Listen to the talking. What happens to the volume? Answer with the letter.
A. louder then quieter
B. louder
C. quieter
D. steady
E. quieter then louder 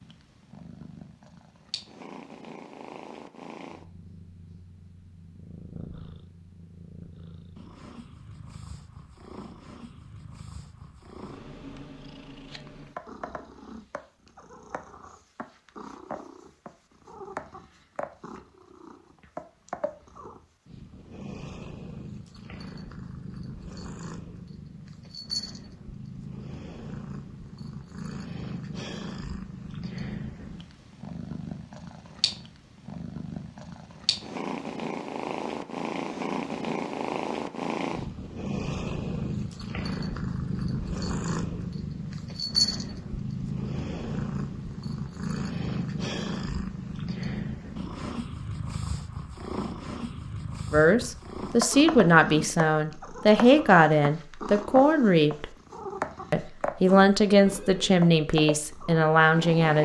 D.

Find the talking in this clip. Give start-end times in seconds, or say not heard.
50.7-55.5, 56.3-59.8.